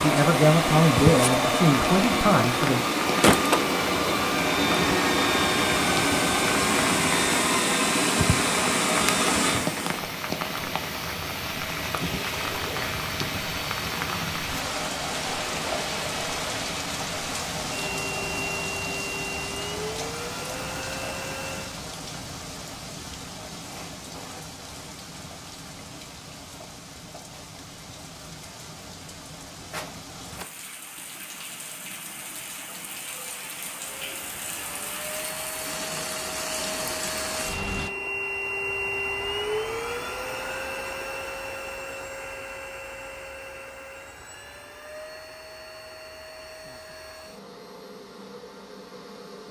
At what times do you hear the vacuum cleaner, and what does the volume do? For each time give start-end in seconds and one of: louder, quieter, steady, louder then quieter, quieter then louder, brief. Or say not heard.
0.0-21.8 quieter
34.0-49.4 louder then quieter.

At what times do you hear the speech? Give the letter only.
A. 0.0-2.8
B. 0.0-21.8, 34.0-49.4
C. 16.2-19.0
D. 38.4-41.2
A.